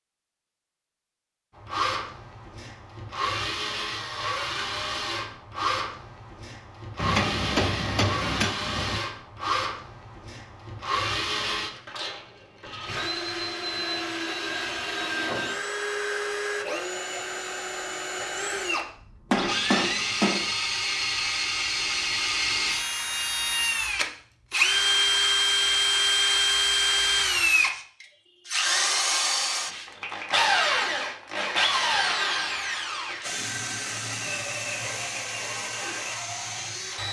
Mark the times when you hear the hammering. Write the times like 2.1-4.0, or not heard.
7.0-9.0, 19.3-20.5.